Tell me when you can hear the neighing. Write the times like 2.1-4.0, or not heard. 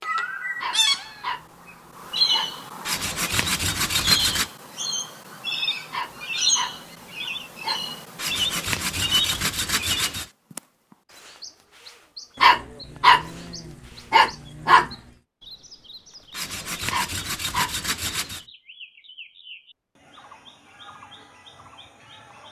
not heard.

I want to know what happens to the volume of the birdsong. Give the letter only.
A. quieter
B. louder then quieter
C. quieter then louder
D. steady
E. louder
A.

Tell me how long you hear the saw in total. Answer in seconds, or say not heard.
6 s.